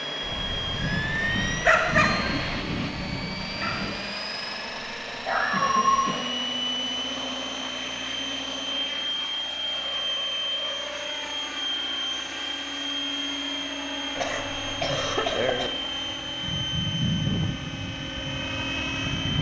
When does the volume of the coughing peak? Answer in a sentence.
The loudest moment of the coughing is at 15 seconds.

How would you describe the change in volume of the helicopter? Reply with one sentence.
The loudness of the helicopter stays about the same.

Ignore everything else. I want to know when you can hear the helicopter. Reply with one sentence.
You can hear the helicopter from 0.0 to 19.3 s.